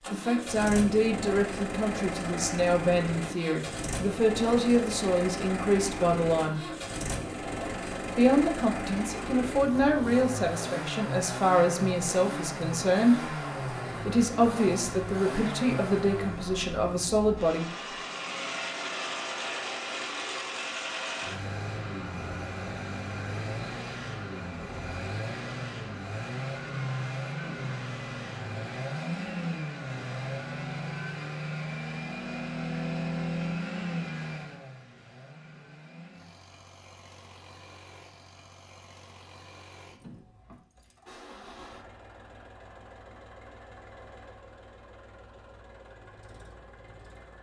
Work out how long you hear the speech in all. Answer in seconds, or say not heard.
15 s.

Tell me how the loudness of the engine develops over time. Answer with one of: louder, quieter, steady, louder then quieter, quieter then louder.
quieter.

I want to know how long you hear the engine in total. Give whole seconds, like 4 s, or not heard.
47 s.